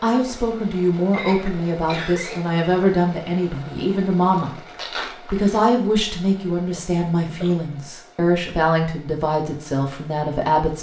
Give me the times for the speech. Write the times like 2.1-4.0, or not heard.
0.0-4.6, 5.2-10.7.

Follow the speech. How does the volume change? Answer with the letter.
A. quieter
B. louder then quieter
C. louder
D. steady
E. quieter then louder
D.